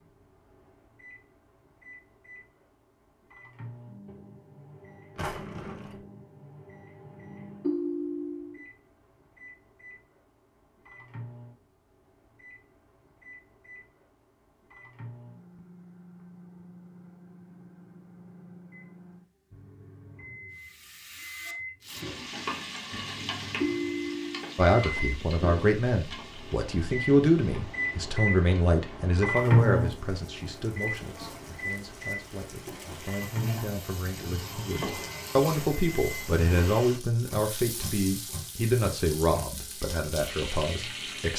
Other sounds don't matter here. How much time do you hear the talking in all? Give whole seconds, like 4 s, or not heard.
17 s.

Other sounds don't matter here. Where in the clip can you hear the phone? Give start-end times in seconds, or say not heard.
7.6-8.6, 23.6-24.6.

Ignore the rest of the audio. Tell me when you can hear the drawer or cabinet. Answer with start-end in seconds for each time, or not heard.
5.2-6.0.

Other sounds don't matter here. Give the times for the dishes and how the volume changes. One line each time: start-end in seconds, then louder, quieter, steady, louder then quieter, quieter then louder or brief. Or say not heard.
not heard.